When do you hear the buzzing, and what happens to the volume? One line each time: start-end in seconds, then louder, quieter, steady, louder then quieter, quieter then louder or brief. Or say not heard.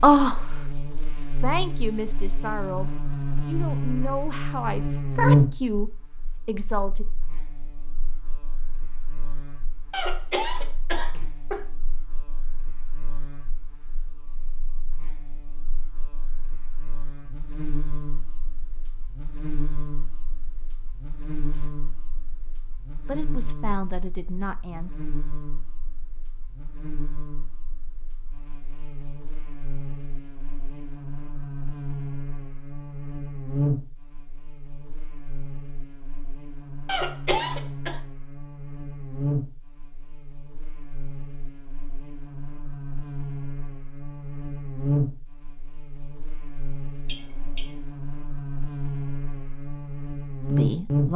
0.0-51.1 quieter then louder.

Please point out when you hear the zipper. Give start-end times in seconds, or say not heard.
not heard.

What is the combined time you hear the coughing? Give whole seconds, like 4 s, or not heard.
3 s.